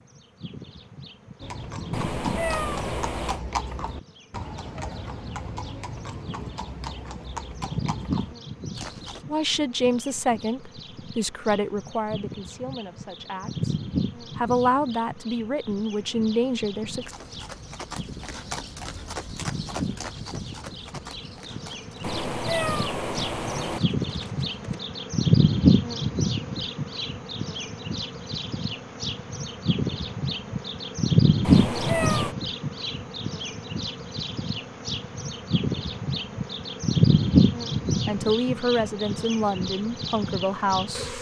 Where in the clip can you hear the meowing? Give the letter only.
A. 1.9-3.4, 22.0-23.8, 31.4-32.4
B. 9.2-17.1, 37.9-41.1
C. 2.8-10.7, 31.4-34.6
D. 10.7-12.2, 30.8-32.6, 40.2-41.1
A.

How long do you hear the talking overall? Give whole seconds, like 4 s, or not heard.
11 s.